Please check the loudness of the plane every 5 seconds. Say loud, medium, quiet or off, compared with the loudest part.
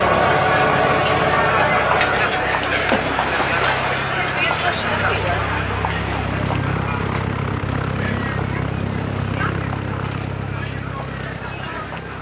medium, loud, medium.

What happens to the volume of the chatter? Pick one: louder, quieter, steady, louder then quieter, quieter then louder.
quieter.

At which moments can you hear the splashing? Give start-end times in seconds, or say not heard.
2.9-4.2.